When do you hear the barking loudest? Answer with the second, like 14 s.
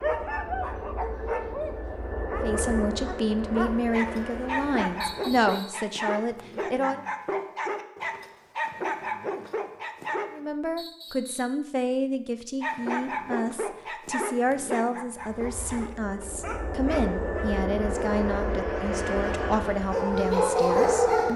21 s.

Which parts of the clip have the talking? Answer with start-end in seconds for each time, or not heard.
2.4-7.0, 10.3-21.3.